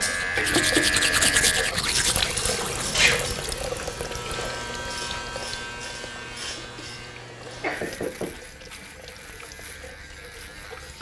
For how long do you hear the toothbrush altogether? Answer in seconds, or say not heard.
3 s.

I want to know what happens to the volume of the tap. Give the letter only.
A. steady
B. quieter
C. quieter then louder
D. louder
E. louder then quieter
B.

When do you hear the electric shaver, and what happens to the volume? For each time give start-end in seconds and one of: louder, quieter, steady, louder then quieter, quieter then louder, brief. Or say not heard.
0.0-10.9 quieter.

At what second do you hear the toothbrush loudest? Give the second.
1 s.